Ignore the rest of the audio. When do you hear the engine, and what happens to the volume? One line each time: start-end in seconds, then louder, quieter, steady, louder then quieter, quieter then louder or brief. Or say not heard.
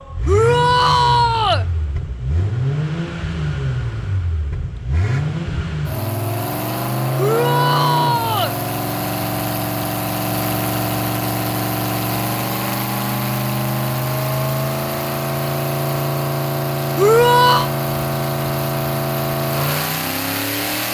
0.0-20.9 steady.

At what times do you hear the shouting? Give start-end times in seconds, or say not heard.
0.2-1.6, 7.2-8.6, 16.9-17.7.